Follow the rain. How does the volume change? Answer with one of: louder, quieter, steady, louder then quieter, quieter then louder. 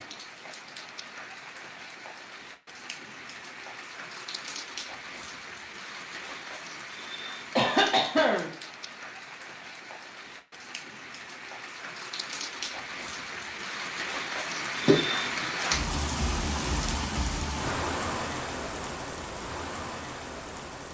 louder.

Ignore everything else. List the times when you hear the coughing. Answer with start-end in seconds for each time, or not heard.
7.5-8.5, 14.8-15.4.